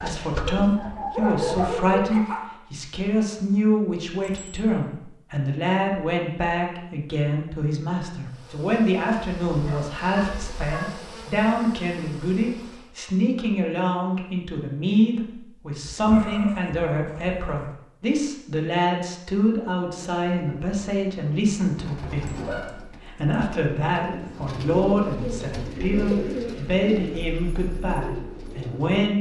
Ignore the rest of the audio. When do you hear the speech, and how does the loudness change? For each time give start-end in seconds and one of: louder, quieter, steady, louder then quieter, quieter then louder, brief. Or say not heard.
0.0-29.1 steady.